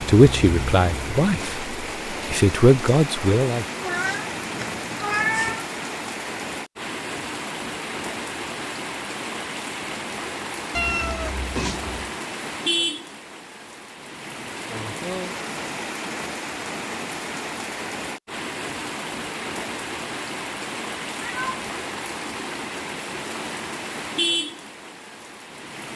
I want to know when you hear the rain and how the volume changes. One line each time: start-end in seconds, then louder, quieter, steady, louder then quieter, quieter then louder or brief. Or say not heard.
0.0-25.9 steady.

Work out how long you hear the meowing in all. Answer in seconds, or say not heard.
4 s.